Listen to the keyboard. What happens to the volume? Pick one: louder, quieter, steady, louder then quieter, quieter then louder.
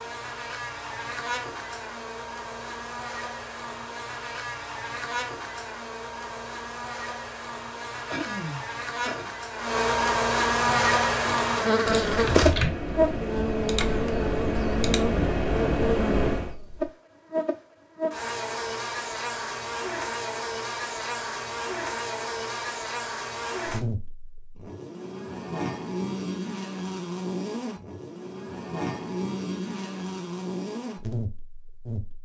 louder.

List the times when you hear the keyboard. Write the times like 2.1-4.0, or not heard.
10.6-16.6.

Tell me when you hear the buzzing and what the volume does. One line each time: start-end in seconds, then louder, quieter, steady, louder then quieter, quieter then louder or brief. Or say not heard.
0.0-32.2 louder then quieter.